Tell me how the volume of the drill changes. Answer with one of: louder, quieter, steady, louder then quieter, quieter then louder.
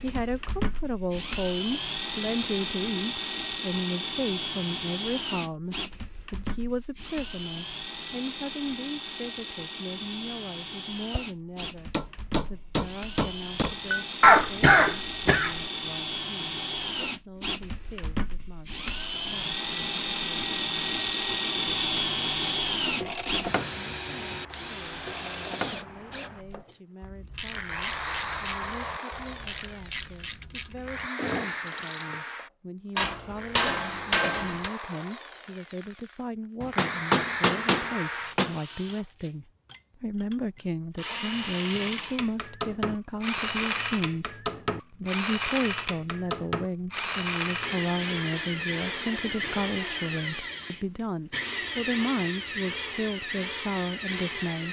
steady.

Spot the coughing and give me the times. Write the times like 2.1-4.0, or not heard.
14.2-15.6.